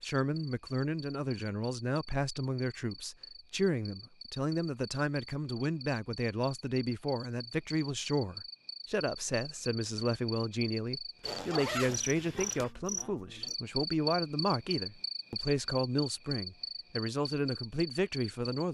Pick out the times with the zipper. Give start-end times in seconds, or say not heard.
11.2-12.7.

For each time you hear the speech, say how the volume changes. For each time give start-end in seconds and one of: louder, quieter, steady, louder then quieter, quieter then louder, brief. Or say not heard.
0.0-18.6 steady.